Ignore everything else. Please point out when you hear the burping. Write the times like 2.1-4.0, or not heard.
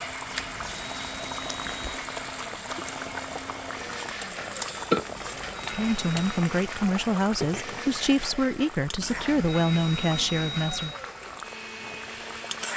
4.3-5.0.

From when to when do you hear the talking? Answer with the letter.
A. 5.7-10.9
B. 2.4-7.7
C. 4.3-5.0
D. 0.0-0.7
A.